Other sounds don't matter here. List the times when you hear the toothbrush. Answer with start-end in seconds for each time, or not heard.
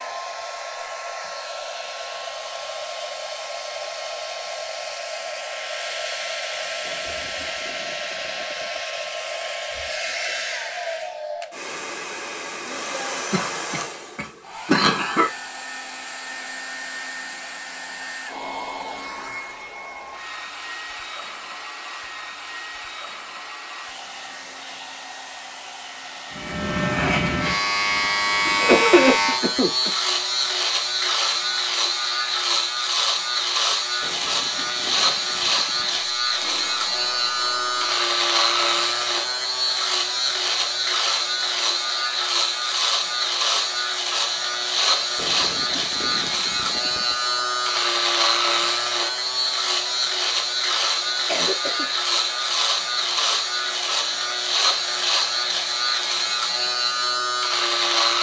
not heard.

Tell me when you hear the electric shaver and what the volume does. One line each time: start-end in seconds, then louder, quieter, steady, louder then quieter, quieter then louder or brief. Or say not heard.
26.3-58.1 steady.